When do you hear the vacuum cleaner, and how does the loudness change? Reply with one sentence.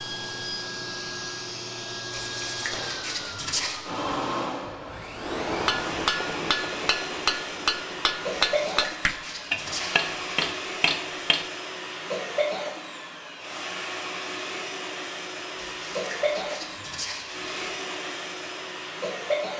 The vacuum cleaner can be heard from 0.0 to 19.5 s, at a steady volume.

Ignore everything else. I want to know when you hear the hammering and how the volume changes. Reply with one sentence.
You can hear the hammering from 5.2 to 11.5 s, at a steady volume.